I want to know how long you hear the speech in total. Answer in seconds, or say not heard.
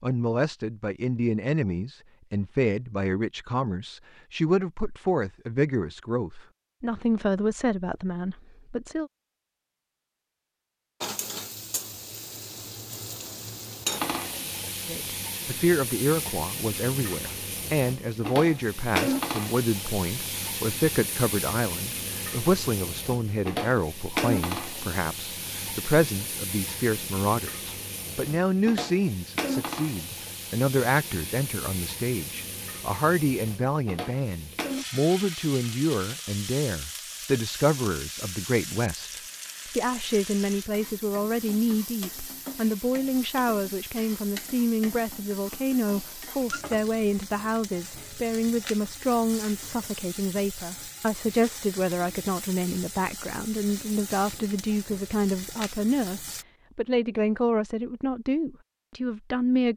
54 s.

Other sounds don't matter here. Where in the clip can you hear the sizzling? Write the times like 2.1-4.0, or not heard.
11.0-56.5.